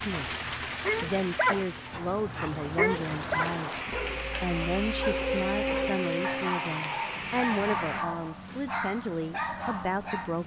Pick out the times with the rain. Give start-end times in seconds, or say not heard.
0.0-8.1.